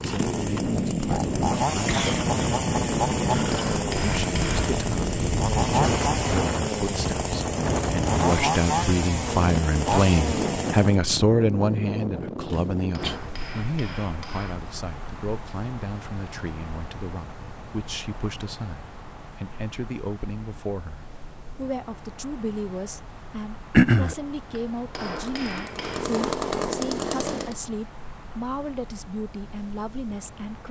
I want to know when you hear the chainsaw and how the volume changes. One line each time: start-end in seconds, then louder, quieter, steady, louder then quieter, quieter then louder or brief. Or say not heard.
0.0-10.9 steady
25.1-27.6 brief.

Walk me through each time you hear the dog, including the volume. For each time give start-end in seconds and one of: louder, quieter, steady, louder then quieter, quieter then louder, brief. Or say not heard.
not heard.